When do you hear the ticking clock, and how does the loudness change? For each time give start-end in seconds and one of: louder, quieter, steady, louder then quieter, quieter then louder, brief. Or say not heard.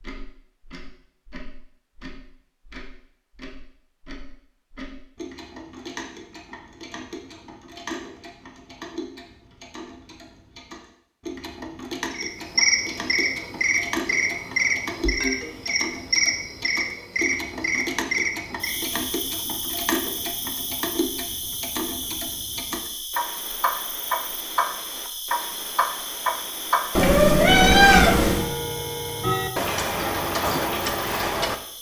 0.0-31.6 louder.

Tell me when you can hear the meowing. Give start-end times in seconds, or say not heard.
26.9-28.4.